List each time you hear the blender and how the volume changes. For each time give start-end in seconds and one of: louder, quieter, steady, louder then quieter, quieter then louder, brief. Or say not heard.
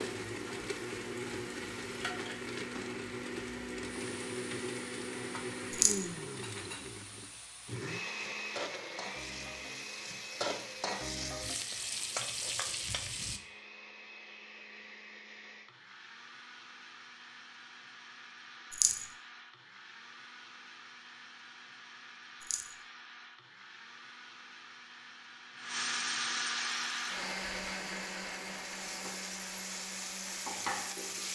0.0-31.2 quieter then louder.